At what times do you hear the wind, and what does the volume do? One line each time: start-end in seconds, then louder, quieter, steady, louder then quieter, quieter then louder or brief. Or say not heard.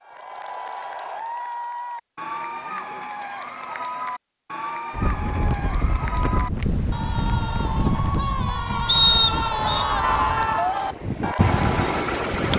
4.9-12.5 quieter then louder.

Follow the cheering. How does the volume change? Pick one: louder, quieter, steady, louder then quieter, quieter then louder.
louder.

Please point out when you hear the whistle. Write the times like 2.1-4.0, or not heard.
8.8-9.8.